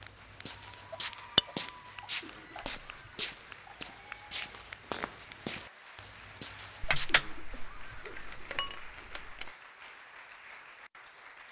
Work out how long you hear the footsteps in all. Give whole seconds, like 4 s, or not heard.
7 s.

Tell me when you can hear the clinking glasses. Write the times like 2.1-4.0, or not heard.
6.8-9.5.